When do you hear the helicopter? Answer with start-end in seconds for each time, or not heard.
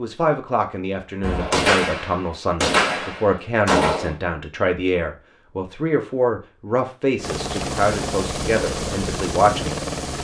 7.2-10.2.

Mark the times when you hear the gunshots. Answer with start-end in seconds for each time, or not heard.
1.2-4.2.